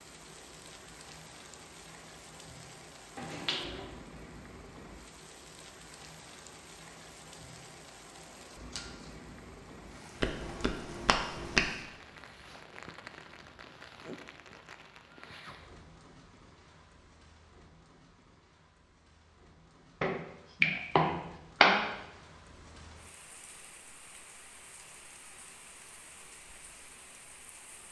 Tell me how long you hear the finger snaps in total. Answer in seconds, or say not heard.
4 s.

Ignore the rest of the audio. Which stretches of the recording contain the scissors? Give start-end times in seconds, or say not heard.
8.5-9.3.